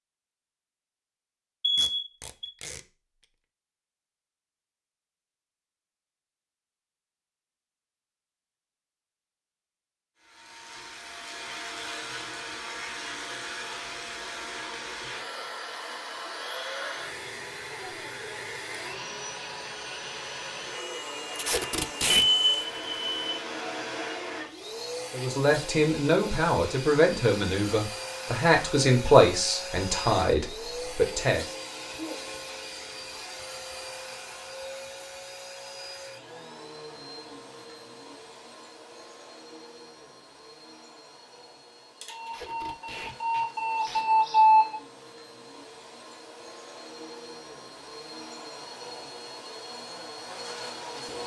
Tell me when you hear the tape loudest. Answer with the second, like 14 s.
22 s.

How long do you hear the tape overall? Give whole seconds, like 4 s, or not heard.
4 s.